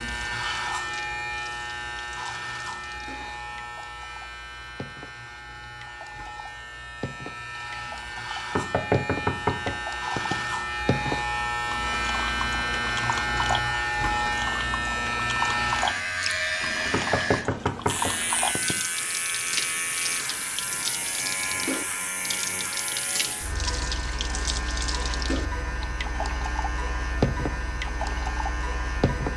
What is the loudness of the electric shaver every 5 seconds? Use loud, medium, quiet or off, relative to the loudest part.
medium, medium, loud, loud, medium, medium.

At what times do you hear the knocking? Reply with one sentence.
The knocking can be heard from 8.6 to 10.3 s and from 16.9 to 18.8 s.